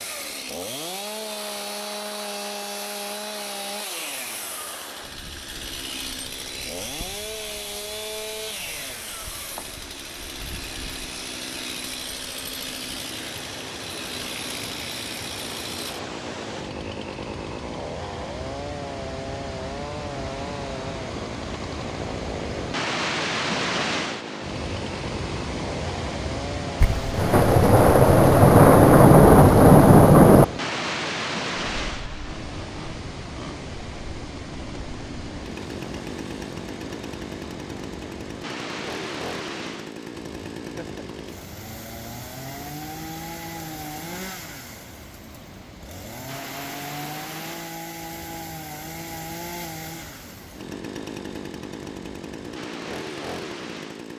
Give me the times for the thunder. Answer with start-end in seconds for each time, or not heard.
26.8-30.4.